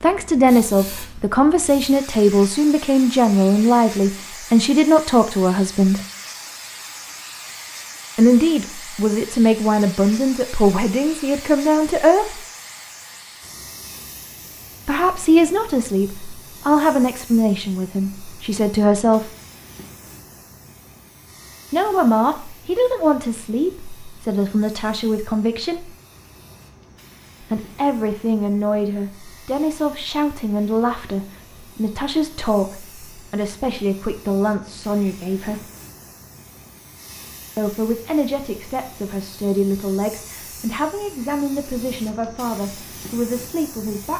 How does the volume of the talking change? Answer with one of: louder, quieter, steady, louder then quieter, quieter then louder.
quieter.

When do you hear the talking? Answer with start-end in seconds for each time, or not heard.
0.0-6.0, 8.2-12.4, 14.8-19.3, 21.7-25.9, 27.4-35.6, 37.5-44.1.